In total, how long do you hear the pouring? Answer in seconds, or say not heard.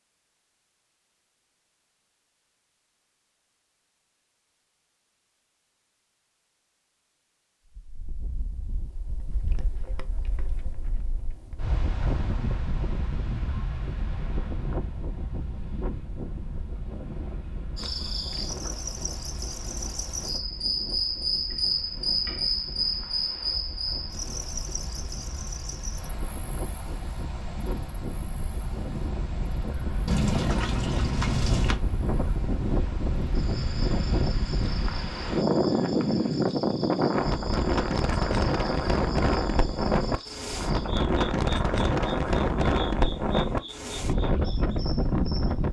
2 s.